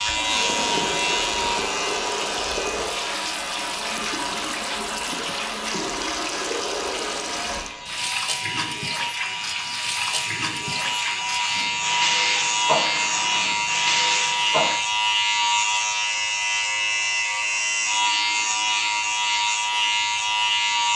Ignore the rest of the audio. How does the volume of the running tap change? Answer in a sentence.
The volume of the running tap stays about the same.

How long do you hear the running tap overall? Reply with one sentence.
The running tap can be heard for 15 seconds in total.